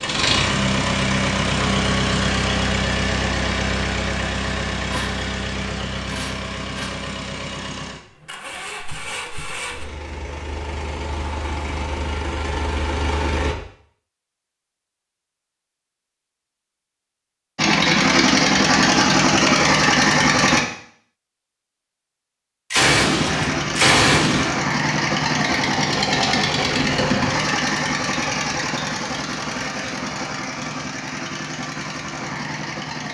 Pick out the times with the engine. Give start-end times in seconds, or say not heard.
0.0-13.6, 17.6-20.6, 23.0-33.0.